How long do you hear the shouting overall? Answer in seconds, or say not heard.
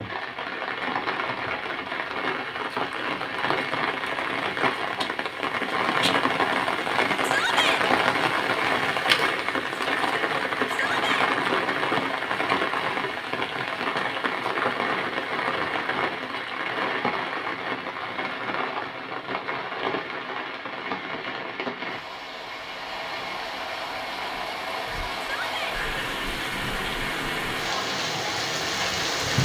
2 s.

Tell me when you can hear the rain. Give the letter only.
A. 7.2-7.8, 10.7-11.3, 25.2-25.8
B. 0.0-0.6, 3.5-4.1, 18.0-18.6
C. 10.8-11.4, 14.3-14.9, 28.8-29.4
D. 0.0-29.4
D.